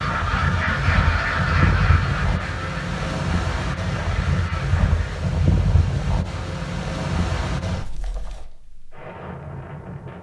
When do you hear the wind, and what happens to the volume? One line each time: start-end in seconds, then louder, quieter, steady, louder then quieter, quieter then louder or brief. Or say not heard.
0.0-10.1 quieter.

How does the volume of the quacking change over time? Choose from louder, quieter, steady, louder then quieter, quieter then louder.
quieter.